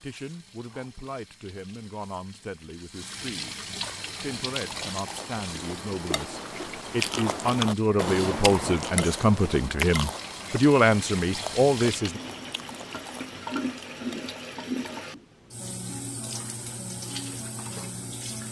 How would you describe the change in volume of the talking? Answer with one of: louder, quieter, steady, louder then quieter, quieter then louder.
louder.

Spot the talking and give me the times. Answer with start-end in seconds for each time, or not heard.
0.0-3.6, 4.2-12.2.